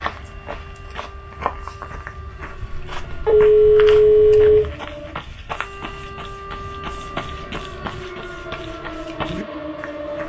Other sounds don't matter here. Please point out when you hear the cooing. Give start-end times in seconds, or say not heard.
not heard.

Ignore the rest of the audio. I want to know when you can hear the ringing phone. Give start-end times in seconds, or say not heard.
2.9-4.7.